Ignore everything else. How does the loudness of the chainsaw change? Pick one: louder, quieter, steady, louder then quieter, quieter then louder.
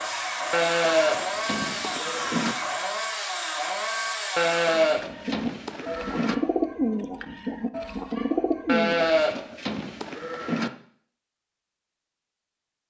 steady.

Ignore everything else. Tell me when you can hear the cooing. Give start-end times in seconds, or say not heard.
4.7-9.6.